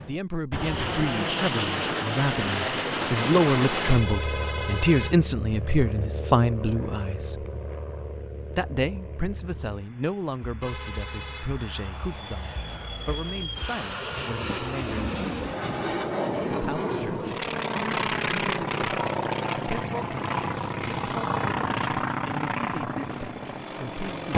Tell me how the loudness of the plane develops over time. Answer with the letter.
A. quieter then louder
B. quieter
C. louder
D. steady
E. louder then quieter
A.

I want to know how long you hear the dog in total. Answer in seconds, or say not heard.
not heard.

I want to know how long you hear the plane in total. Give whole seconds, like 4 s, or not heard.
24 s.